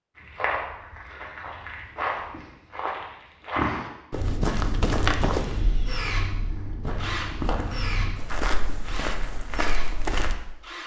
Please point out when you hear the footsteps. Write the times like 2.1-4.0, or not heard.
0.1-10.3.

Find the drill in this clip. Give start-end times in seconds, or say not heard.
5.3-10.8.